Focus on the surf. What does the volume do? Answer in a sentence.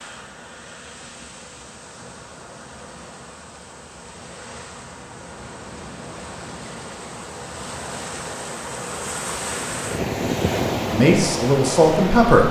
The loudness of the surf goes up.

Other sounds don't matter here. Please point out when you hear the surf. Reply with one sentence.
You can hear the surf from 0.0 to 12.4 s.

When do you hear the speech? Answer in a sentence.
The speech can be heard from 10.8 to 12.4 s.